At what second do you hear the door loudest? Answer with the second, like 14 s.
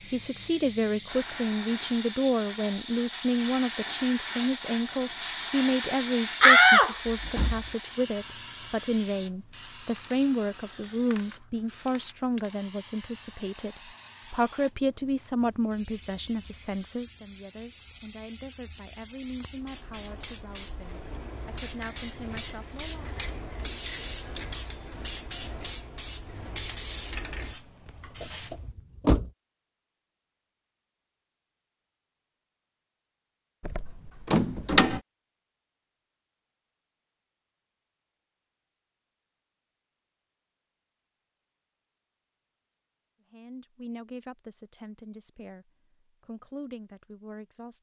7 s.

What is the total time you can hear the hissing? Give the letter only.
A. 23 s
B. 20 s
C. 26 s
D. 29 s
D.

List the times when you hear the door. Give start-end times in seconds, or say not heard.
6.4-7.6, 27.9-29.3, 33.6-35.0.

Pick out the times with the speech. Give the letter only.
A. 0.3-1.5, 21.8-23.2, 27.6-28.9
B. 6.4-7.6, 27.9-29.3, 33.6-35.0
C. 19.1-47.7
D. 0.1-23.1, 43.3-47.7
D.